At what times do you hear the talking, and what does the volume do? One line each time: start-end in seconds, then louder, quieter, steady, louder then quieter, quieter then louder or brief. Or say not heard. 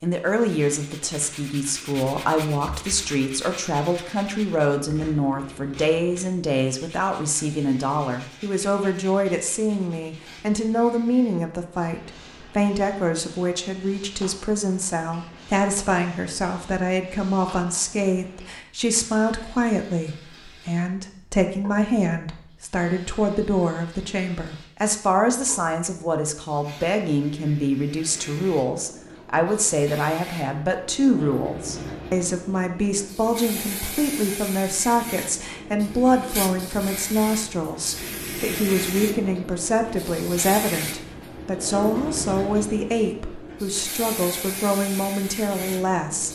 0.0-46.3 steady.